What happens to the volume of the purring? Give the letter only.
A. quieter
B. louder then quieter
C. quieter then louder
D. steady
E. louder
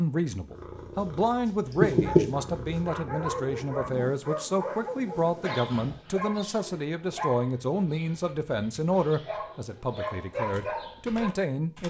B.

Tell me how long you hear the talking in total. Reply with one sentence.
You can hear the talking for 12 seconds altogether.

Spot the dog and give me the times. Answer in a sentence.
The dog can be heard from 1.9 to 11.3 s.